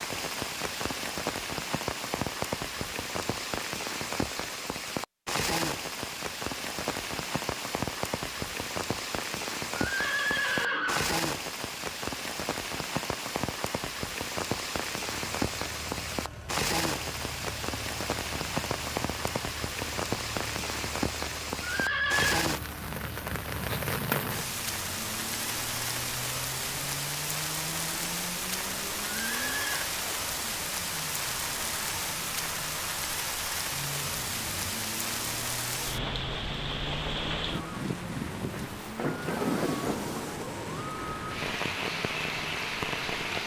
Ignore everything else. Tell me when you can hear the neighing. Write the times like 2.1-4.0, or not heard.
9.8-11.2, 21.6-22.5, 29.2-29.9.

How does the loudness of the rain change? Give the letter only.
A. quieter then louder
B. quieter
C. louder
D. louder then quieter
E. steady
E.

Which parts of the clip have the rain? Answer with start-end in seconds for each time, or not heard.
0.0-43.4.